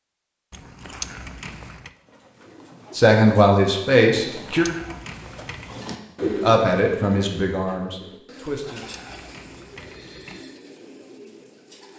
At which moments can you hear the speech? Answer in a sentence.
The speech can be heard from 3.0 to 4.7 s and from 6.2 to 8.9 s.